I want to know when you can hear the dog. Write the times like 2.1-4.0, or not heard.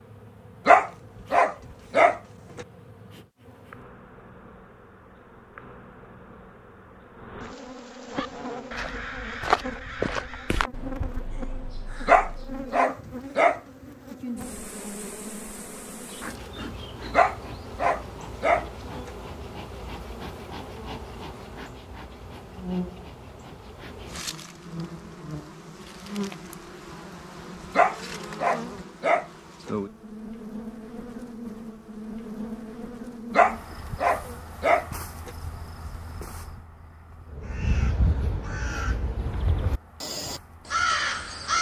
0.7-2.6, 12.1-13.6, 17.1-19.1, 27.8-29.7, 33.3-35.3.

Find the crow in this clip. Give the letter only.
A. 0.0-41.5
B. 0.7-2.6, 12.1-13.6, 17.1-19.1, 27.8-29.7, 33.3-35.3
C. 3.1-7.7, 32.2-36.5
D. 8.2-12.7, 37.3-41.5
D.